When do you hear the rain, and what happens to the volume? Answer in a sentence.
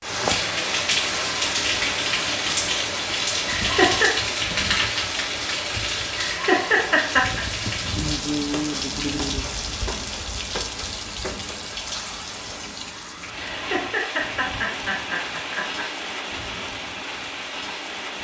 The rain can be heard from 0.0 to 18.1 s, getting quieter.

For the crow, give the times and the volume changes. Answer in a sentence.
The crow can't be heard in this clip.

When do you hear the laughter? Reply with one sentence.
You can hear the laughter from 3.5 to 4.1 s, from 6.2 to 7.5 s and from 13.5 to 15.8 s.